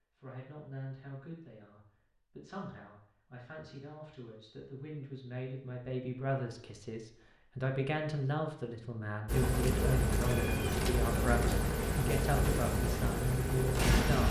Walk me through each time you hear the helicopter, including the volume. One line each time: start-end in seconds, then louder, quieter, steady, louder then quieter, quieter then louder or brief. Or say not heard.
9.2-14.2 steady.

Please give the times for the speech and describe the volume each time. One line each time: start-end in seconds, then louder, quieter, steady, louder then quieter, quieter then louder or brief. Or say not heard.
0.1-14.2 louder.